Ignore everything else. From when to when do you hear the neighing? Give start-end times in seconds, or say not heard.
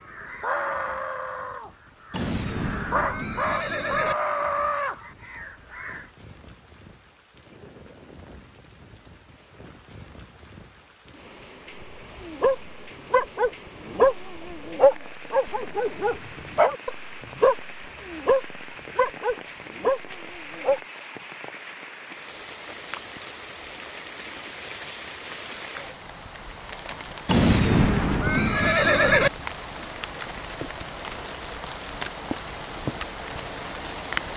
2.1-4.2, 27.2-29.3.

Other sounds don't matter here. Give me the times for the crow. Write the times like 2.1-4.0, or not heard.
0.0-6.1.